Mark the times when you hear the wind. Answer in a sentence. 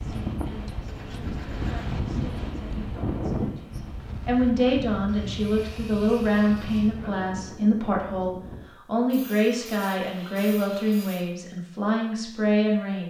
You can hear the wind from 0.0 to 8.7 s.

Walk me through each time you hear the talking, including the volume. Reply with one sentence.
You can hear the talking from 0.0 to 13.0 s, getting louder.